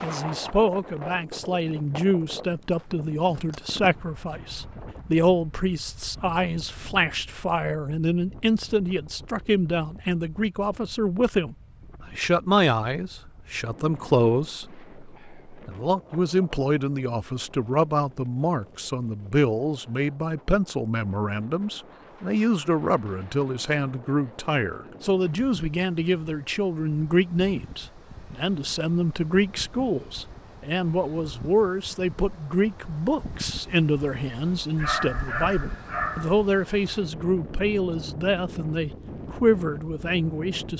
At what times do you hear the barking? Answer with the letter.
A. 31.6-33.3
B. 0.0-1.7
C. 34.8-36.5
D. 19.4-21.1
C.